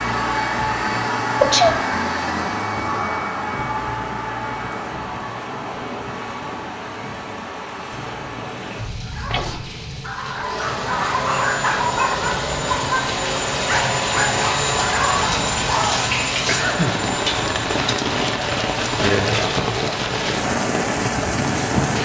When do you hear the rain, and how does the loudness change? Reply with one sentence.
The rain can be heard from 0.2 to 22.0 s, getting louder.